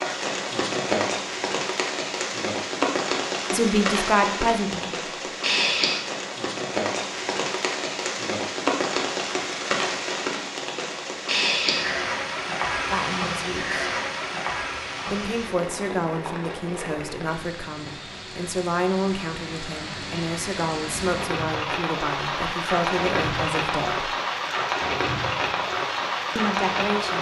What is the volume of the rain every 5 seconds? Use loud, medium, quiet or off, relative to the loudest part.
loud, loud, loud, medium, loud, loud.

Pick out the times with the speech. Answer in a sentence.
You can hear the speech from 3.5 to 5.0 s, from 12.9 to 13.8 s, from 15.1 to 24.1 s and from 26.4 to 27.1 s.